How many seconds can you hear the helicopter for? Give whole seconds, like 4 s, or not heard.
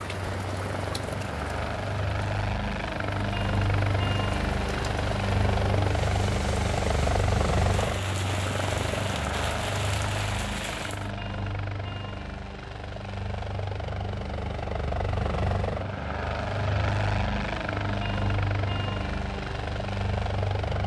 21 s.